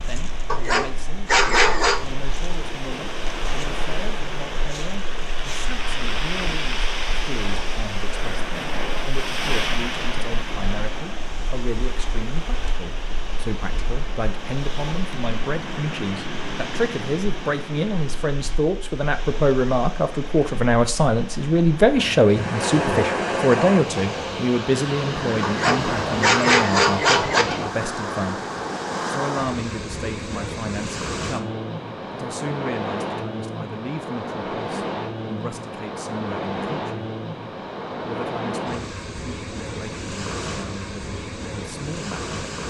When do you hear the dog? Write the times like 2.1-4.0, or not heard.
0.5-2.0, 25.4-27.4.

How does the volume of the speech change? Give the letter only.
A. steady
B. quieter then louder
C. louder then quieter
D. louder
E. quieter
C.